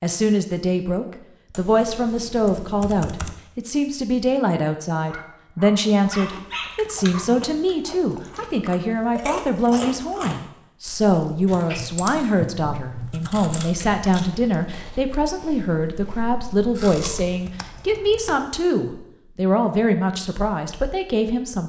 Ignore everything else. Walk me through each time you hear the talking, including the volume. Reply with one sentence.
You can hear the talking from 0.0 to 21.6 s, at a steady volume.